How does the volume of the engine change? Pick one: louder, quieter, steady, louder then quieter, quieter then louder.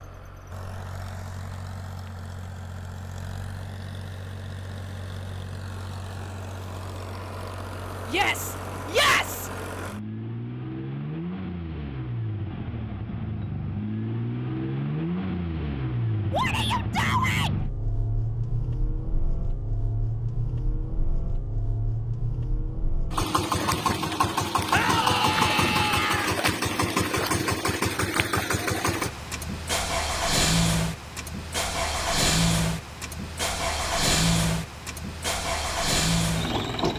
louder.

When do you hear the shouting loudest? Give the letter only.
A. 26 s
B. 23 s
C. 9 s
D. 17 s
C.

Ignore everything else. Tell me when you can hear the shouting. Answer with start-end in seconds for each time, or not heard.
8.1-9.5, 16.3-17.6, 24.7-26.4.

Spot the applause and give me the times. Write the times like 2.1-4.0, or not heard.
not heard.